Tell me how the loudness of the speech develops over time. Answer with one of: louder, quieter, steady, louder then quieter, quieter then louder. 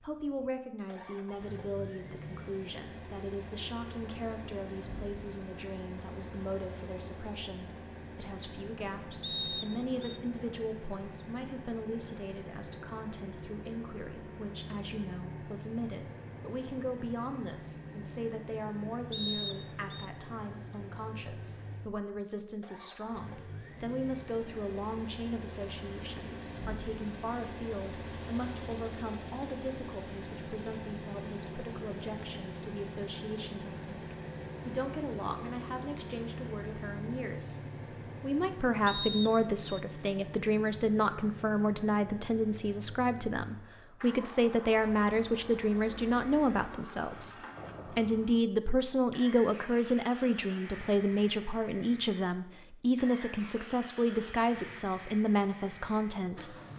louder.